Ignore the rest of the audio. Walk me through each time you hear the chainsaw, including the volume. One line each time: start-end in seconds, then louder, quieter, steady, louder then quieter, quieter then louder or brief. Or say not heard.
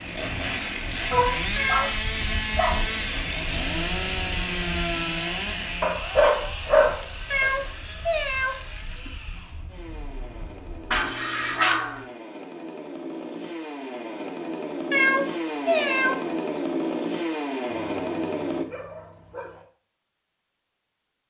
0.0-18.6 quieter then louder.